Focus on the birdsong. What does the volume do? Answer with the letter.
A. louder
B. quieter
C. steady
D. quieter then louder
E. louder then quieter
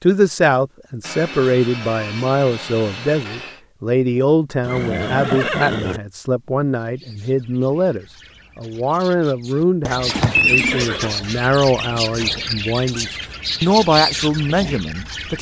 A.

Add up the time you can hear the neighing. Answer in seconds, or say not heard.
2 s.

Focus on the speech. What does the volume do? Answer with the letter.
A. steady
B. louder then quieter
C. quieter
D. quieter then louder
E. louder
A.